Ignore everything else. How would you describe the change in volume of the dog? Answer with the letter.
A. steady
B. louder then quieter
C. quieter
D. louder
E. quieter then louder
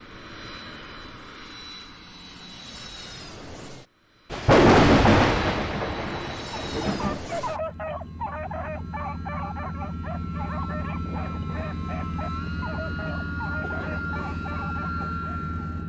C.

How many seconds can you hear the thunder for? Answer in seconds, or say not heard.
3 s.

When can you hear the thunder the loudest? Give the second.
5 s.